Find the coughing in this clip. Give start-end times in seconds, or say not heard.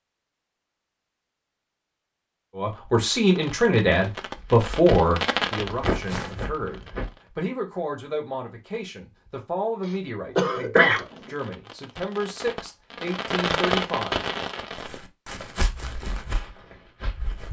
9.8-11.3.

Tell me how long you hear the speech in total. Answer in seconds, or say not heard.
12 s.